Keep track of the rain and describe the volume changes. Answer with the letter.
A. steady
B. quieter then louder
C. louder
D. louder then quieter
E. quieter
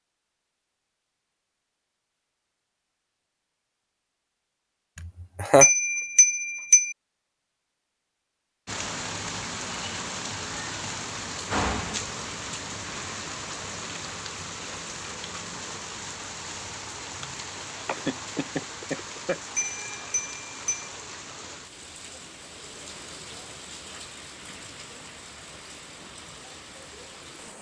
E.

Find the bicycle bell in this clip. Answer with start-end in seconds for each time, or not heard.
5.6-7.0, 19.6-20.9.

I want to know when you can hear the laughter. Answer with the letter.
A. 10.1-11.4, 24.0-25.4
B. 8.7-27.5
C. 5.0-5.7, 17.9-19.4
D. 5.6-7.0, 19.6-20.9
C.